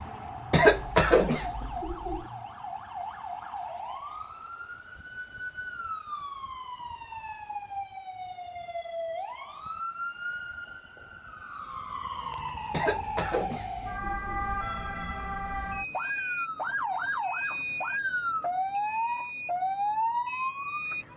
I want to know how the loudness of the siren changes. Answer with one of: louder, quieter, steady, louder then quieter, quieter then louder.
louder.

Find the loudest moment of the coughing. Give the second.
1 s.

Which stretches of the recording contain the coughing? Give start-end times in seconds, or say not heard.
0.5-2.2, 12.7-14.4.